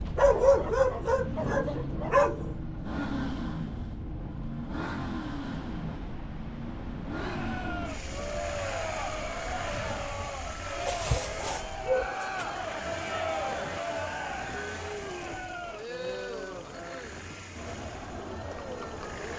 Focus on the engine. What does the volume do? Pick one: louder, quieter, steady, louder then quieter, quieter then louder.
quieter.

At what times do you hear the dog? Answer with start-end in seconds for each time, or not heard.
0.1-2.5, 10.8-12.4.